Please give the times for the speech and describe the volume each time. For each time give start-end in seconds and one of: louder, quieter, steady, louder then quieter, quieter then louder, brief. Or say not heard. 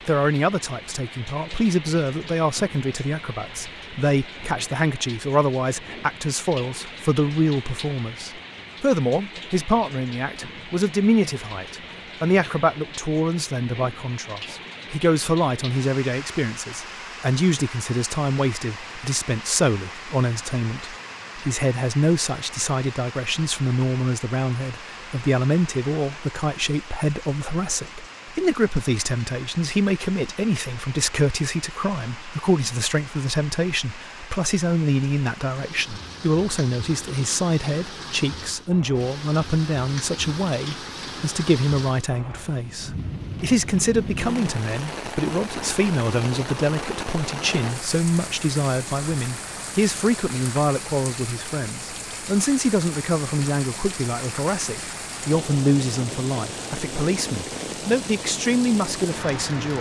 0.1-59.7 steady.